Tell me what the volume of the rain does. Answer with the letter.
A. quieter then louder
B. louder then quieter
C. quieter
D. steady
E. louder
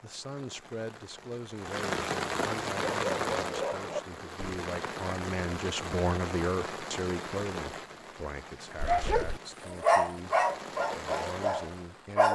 C.